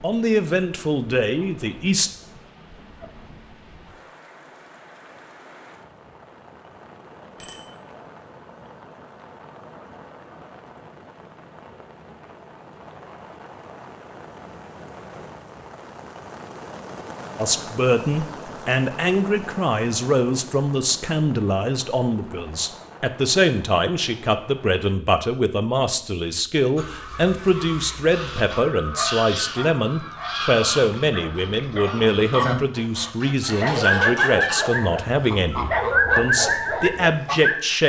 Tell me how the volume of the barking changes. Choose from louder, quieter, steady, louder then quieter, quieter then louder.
louder.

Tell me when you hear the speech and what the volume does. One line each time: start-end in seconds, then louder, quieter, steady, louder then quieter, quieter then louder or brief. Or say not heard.
0.0-2.1 brief
17.4-37.8 steady.